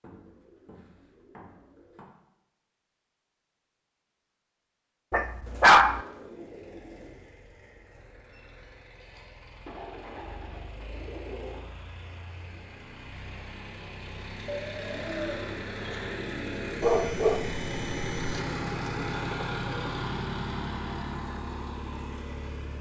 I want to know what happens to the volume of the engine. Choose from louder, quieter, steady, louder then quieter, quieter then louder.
louder.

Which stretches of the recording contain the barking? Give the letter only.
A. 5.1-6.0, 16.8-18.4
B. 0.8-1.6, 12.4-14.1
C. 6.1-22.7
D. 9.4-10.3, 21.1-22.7
A.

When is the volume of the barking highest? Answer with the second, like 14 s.
6 s.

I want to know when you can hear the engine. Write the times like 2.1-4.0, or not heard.
6.1-22.7.